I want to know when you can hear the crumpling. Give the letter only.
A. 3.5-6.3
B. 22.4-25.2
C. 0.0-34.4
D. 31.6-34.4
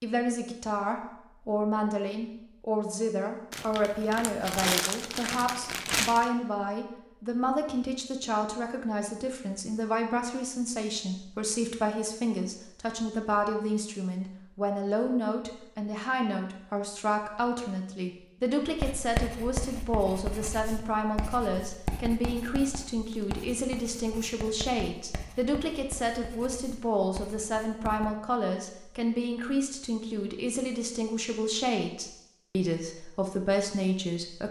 A.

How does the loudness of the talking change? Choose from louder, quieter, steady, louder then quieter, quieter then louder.
steady.